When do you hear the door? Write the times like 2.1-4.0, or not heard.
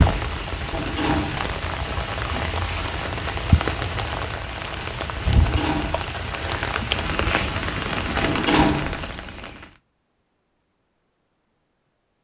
0.7-1.6, 5.3-6.2, 8.2-9.1.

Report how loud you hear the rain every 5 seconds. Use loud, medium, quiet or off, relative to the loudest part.
loud, loud, off.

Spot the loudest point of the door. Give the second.
9 s.